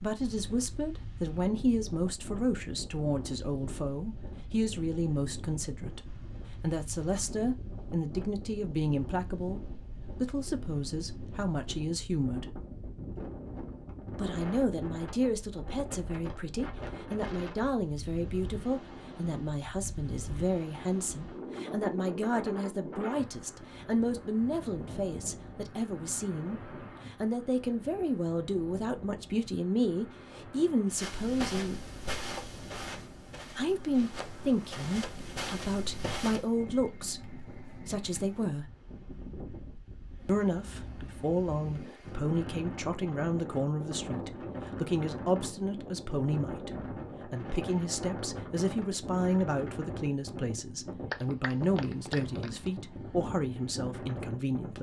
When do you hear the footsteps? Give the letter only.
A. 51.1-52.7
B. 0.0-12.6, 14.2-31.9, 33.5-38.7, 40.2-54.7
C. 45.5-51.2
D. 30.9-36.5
D.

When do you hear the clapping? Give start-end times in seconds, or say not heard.
51.1-52.7.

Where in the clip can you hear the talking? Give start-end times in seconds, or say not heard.
0.0-12.6, 14.2-31.9, 33.5-38.7, 40.2-54.7.